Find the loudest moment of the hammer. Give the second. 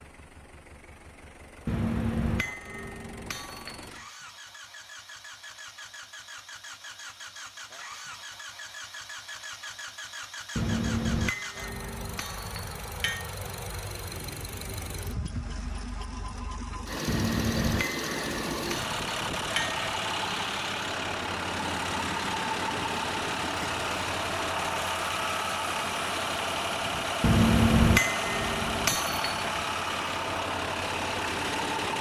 28 s.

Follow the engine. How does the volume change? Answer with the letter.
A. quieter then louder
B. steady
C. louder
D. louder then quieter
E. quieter
C.